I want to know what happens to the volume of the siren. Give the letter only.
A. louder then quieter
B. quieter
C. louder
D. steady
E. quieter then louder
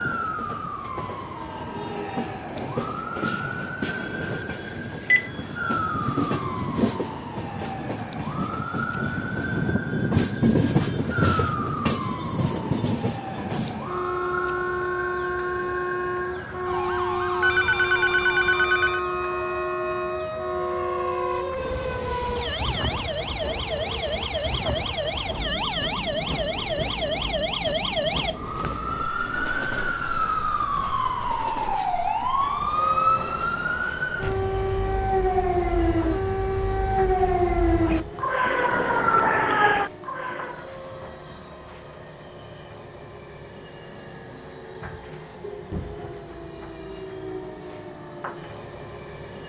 C.